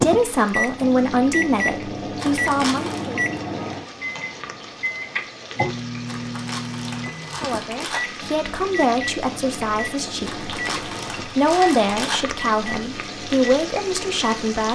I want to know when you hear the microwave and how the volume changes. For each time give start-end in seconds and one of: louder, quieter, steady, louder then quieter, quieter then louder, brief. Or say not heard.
0.0-14.6 quieter.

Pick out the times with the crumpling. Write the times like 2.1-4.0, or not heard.
2.1-3.0, 6.0-8.0, 10.2-12.2.